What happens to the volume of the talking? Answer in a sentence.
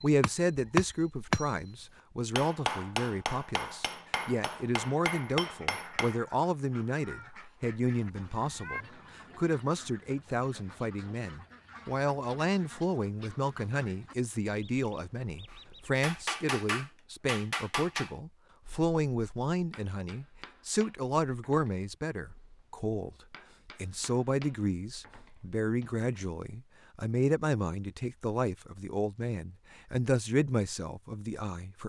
The volume of the talking stays about the same.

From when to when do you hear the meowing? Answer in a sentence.
You can hear the meowing from 7.0 to 8.8 s.